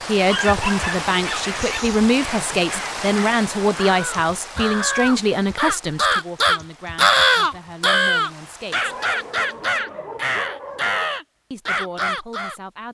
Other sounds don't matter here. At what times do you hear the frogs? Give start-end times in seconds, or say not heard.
not heard.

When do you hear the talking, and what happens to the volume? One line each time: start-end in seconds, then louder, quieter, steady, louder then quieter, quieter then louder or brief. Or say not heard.
0.1-8.9 quieter
11.5-12.8 brief.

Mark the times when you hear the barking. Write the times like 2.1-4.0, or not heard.
0.2-1.9, 8.8-11.2.